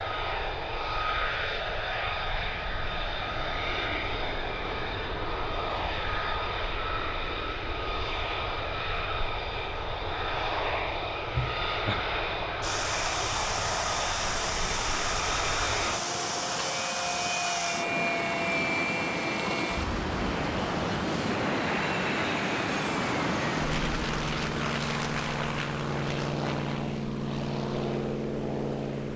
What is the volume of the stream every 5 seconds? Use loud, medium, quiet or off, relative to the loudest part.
off, off, loud, loud, loud, quiet.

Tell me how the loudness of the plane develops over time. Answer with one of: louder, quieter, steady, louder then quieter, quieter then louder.
steady.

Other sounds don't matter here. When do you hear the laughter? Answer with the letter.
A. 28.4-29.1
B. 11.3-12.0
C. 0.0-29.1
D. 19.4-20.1
B.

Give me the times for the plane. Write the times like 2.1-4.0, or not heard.
0.0-29.1.